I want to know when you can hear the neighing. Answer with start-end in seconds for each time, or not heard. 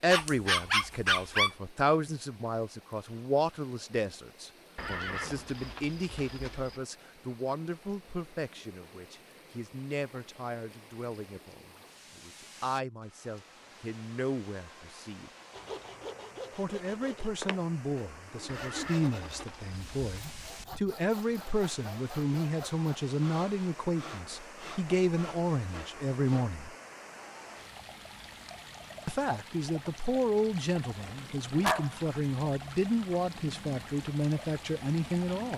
4.8-6.8, 18.4-20.4.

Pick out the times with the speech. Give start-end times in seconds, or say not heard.
0.0-15.3, 16.6-26.7, 29.1-35.5.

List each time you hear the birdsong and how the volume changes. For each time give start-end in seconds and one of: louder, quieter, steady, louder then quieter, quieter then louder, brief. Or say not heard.
not heard.